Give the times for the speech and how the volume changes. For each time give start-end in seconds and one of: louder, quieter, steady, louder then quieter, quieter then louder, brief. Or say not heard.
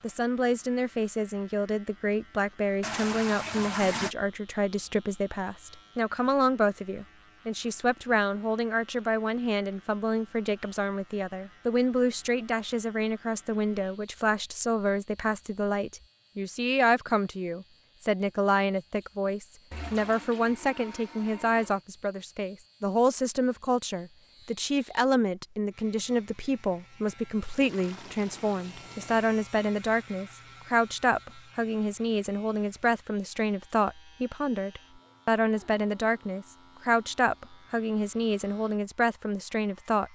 0.0-40.0 steady.